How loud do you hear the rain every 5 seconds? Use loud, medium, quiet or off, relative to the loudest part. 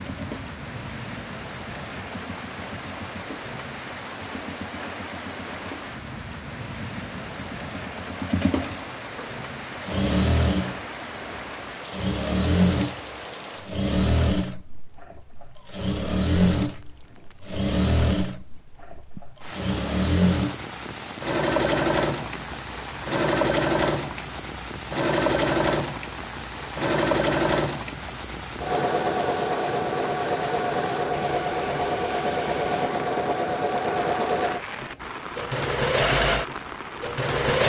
loud, loud, loud, medium, loud, loud, loud, loud.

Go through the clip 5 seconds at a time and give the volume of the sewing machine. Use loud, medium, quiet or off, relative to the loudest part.
quiet, medium, loud, loud, loud, loud, loud, loud.